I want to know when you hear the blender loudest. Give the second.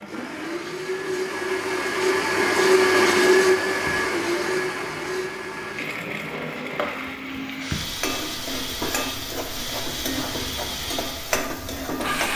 3 s.